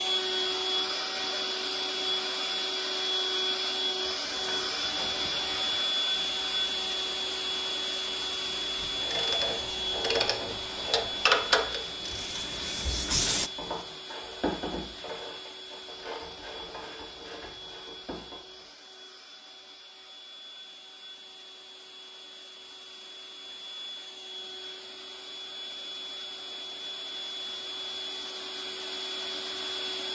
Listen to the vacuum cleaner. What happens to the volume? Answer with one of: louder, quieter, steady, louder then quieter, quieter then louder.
quieter then louder.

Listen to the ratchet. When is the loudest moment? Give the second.
11 s.